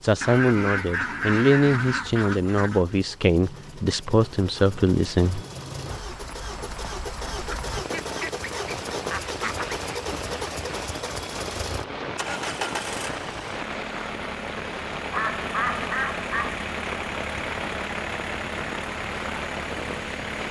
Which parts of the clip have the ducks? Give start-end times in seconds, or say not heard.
0.2-2.9, 7.4-9.8, 15.1-16.6.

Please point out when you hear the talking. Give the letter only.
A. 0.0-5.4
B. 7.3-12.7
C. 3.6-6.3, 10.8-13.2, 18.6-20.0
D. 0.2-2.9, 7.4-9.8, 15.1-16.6
A.